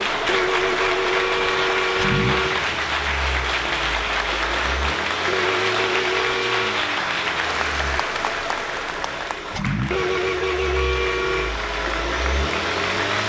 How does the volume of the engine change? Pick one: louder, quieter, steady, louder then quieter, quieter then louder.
steady.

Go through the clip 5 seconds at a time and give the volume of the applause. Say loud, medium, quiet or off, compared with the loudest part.
loud, loud, medium.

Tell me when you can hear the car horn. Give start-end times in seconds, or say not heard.
0.2-2.6, 5.2-6.8, 9.9-11.6.